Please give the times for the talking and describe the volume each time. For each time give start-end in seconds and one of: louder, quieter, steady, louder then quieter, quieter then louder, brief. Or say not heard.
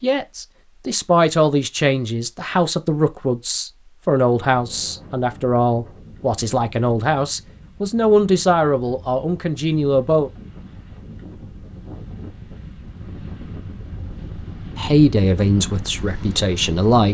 0.0-10.3 steady
14.8-17.1 brief.